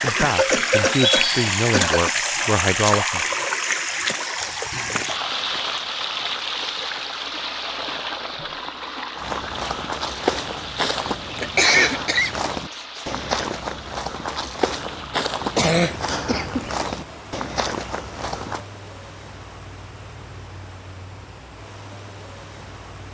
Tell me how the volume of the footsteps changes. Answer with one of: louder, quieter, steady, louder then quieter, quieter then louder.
steady.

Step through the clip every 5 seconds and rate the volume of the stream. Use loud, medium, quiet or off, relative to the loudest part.
loud, medium, quiet, quiet, quiet.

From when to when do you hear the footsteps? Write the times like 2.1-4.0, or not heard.
9.2-18.6.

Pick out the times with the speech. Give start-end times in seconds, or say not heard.
0.0-3.3.